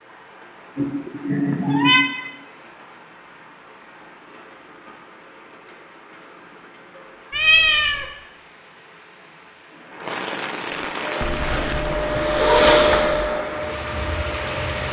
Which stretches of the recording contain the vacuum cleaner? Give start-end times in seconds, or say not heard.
11.2-14.8.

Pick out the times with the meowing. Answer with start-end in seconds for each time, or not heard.
0.8-2.0, 7.3-8.1, 11.2-13.2.